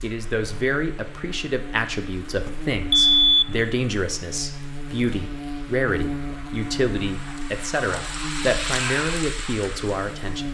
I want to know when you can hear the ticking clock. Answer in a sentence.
You can't hear the ticking clock here.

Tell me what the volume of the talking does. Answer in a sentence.
The volume of the talking stays about the same.